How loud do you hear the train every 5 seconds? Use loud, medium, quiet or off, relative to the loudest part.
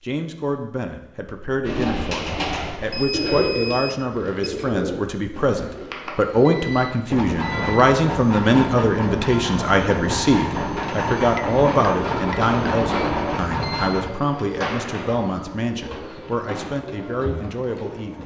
off, loud, loud, quiet.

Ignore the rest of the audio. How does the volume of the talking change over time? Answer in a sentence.
The volume of the talking goes up, then down.